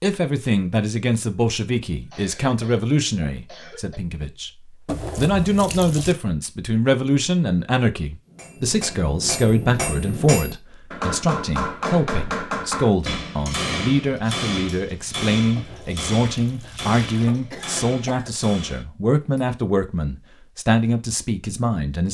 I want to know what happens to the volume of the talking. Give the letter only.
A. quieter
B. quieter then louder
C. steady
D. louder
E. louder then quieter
C.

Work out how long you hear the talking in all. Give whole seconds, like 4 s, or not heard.
22 s.